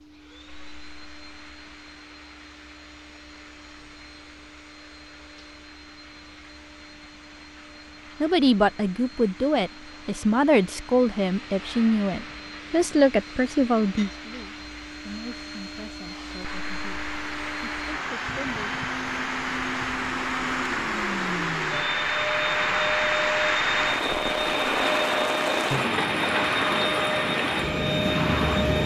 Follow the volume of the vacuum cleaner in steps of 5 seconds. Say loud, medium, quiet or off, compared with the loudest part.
quiet, quiet, quiet, medium, loud, loud.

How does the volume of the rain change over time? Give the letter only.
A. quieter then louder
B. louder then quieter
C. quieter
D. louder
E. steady
D.